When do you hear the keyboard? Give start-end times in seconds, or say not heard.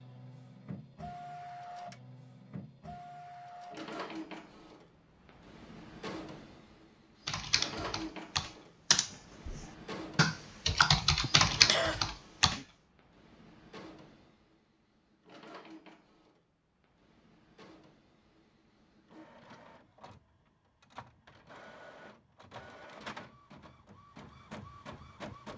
7.2-12.6.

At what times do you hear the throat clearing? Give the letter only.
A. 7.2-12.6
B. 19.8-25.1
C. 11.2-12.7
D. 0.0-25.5
C.